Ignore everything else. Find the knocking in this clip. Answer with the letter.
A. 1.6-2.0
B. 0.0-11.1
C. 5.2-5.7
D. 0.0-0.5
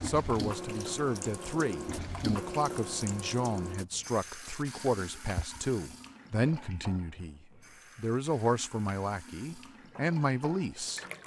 C.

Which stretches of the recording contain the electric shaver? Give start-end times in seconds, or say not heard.
not heard.